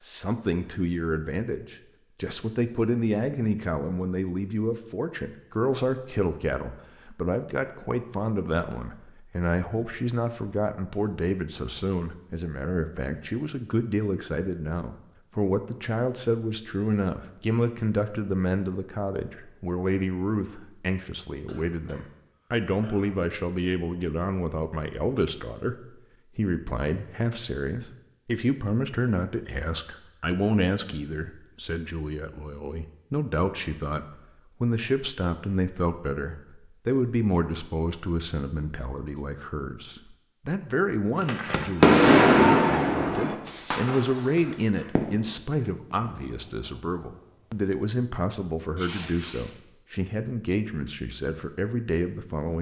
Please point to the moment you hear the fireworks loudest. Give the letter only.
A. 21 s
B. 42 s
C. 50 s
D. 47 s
B.